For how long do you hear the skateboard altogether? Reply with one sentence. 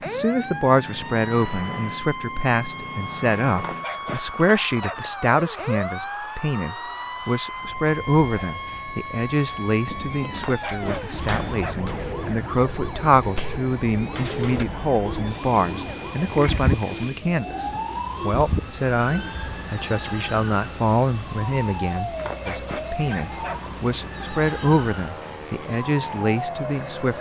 The skateboard can't be heard in this clip.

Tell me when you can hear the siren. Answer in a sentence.
The siren can be heard from 0.0 to 27.1 s.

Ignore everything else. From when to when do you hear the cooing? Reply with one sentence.
You can hear the cooing from 9.8 to 19.4 s.